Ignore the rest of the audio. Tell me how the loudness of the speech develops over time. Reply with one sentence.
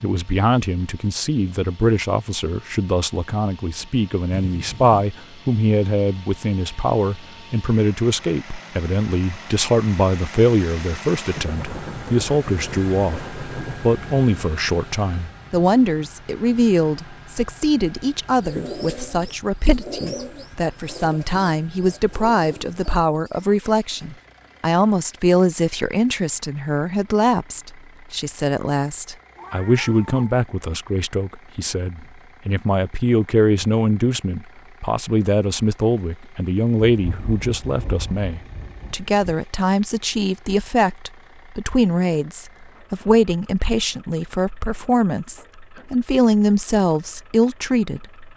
The volume of the speech stays about the same.